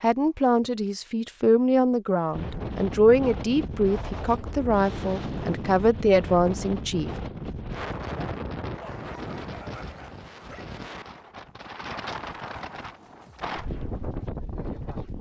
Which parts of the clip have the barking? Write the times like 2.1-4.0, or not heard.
8.8-10.7.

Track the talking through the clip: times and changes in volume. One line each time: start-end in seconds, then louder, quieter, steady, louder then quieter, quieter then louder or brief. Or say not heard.
0.0-7.1 steady.